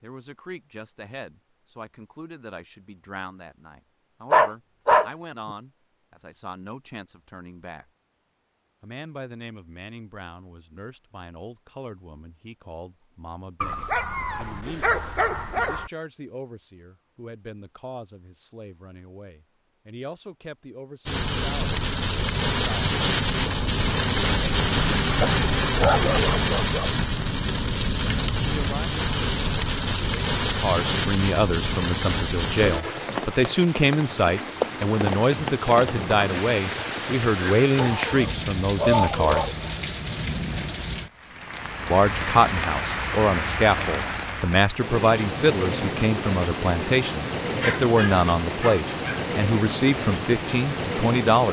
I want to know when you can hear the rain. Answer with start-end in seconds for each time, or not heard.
21.1-51.4.